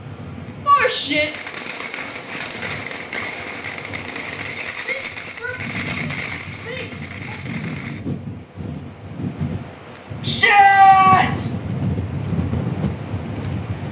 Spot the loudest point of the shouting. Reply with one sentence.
The loudest moment of the shouting is at 11 seconds.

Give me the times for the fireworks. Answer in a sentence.
The fireworks can be heard from 1.2 to 8.1 s.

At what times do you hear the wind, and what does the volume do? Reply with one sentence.
You can hear the wind from 0.0 to 13.8 s, getting louder.